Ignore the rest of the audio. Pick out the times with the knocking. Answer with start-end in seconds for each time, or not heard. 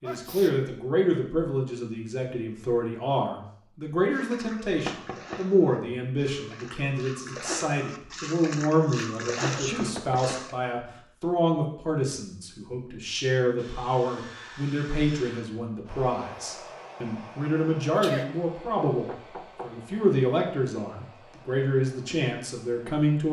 4.8-5.4, 9.7-10.5, 19.1-19.8.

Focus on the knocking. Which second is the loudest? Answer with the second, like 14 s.
5 s.